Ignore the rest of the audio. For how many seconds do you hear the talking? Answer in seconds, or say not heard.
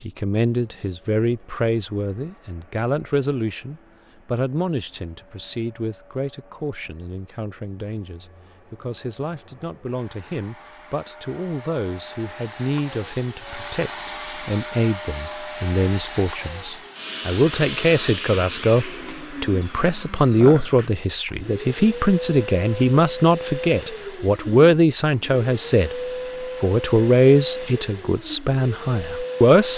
30 s.